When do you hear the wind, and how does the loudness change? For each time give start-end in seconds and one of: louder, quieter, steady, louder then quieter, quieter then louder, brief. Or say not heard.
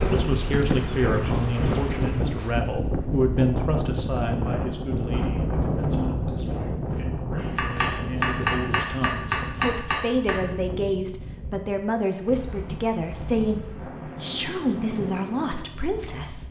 0.0-16.4 quieter.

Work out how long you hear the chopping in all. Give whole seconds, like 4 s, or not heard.
3 s.